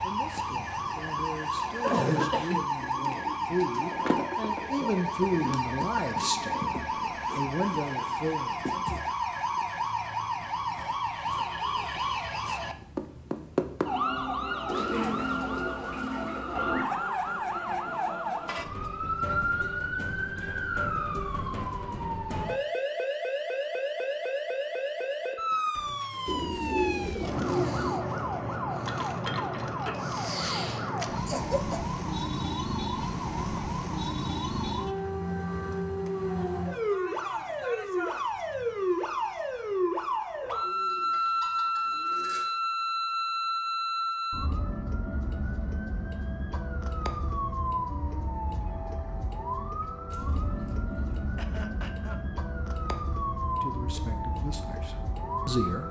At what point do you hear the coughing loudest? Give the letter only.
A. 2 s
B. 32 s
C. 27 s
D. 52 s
A.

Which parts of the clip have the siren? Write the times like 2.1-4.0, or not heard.
0.0-55.8.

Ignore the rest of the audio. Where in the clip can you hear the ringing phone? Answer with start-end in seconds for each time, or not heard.
not heard.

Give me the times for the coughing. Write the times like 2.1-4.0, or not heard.
1.8-3.5, 31.2-31.9, 51.4-52.2.